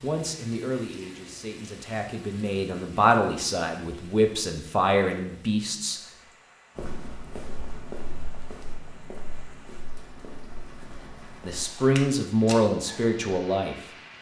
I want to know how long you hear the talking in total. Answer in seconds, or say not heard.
8 s.